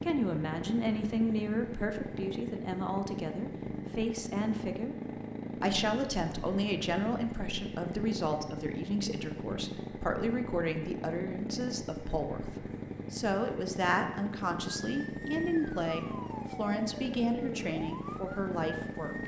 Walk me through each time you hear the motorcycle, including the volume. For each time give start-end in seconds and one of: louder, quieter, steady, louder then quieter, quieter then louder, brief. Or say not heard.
0.0-19.2 steady.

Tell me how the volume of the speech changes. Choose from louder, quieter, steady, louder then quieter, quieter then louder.
steady.